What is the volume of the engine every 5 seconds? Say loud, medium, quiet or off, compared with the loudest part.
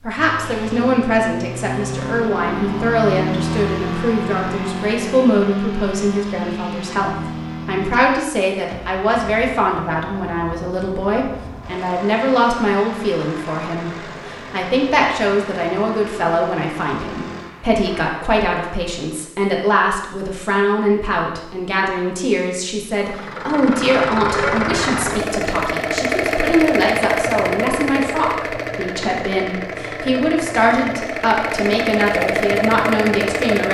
loud, medium, quiet, quiet, loud, loud, loud.